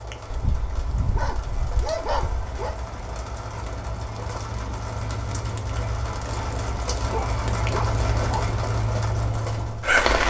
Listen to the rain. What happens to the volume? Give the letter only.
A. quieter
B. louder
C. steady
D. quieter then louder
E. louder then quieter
B.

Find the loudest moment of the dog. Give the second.
2 s.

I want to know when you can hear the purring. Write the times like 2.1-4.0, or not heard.
not heard.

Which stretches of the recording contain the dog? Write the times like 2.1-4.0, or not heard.
0.3-2.8, 7.1-8.4.